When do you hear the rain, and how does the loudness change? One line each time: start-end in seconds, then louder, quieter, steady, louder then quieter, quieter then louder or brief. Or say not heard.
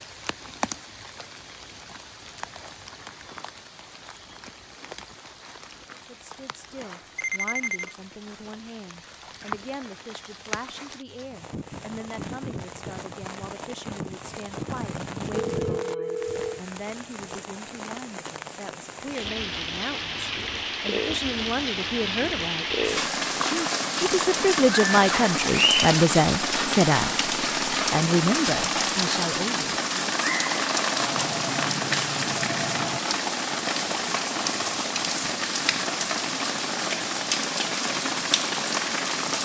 0.0-39.4 louder.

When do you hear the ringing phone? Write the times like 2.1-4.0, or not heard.
7.2-8.0, 15.3-16.6, 30.9-33.0.